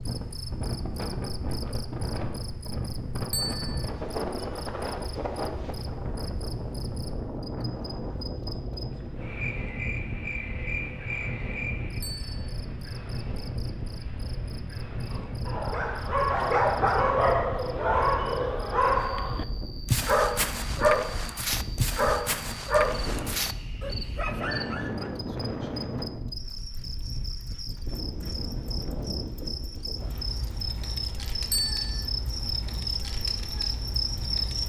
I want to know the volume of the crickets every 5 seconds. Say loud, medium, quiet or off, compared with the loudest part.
medium, medium, medium, quiet, medium, medium, loud.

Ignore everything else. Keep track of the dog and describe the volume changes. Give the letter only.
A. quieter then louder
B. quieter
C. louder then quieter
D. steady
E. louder
B.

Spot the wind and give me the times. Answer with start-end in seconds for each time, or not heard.
0.0-34.6.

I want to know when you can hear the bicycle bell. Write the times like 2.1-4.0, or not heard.
3.3-3.9, 12.0-12.5, 31.5-32.0.